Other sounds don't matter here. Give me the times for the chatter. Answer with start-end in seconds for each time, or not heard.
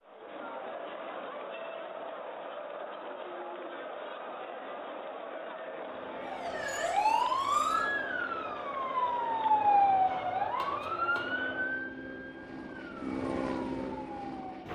0.0-11.8.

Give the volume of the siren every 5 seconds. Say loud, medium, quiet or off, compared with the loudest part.
off, loud, medium.